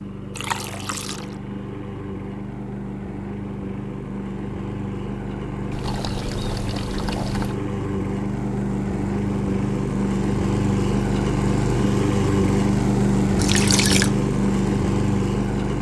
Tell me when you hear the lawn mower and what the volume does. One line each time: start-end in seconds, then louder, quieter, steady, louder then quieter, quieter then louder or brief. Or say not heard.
0.0-15.7 louder.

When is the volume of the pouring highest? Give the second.
14 s.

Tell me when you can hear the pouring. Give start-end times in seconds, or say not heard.
0.3-1.4, 5.7-7.5, 13.3-14.1.